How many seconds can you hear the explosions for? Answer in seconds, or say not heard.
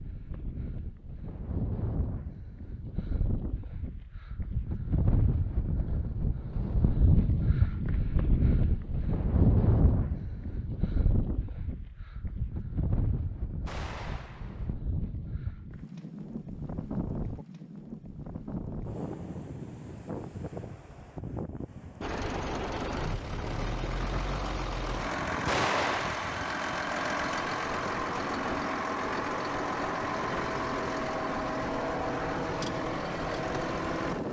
2 s.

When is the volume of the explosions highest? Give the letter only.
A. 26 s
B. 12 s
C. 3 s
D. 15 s
A.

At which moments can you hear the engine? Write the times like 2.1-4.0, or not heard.
22.0-34.2.